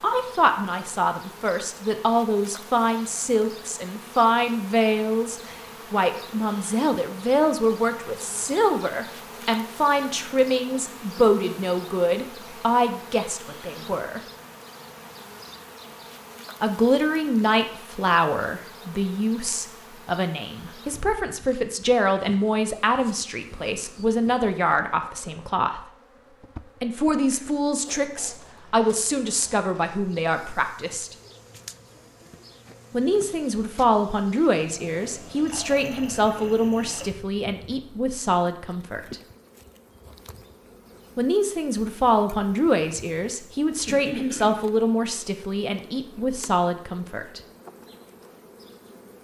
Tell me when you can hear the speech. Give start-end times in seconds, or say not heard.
0.0-14.2, 16.6-25.8, 26.8-31.1, 32.9-39.2, 41.1-47.4.